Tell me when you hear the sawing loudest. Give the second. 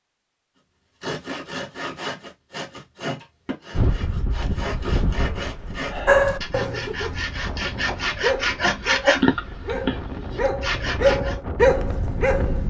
9 s.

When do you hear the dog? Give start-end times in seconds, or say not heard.
6.0-12.6.